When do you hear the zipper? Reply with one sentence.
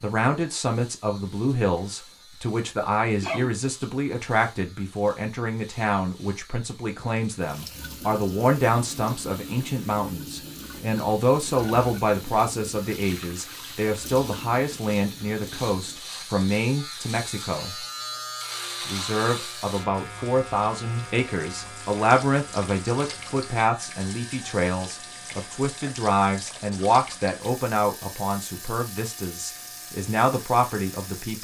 You can't hear the zipper here.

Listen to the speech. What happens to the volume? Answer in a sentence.
The volume of the speech stays about the same.